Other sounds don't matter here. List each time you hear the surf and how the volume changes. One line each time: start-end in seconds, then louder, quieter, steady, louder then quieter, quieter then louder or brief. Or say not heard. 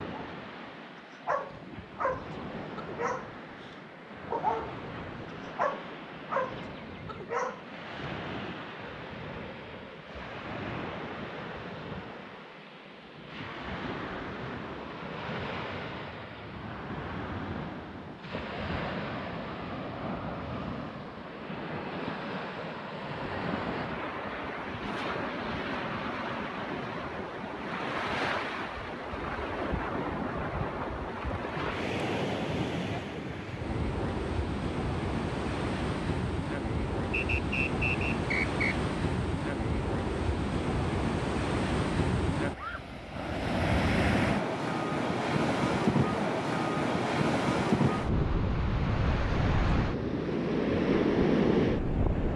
0.0-52.3 louder.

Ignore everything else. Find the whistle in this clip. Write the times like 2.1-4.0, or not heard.
37.1-38.8.